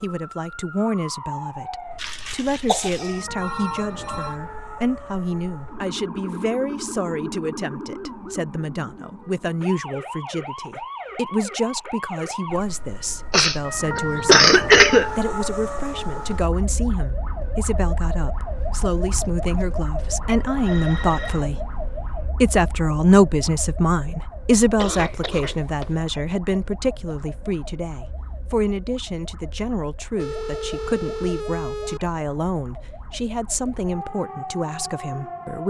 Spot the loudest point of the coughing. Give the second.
15 s.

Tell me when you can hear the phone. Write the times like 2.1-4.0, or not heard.
3.4-4.4, 20.4-21.5, 30.1-32.0.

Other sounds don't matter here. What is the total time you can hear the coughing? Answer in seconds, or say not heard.
4 s.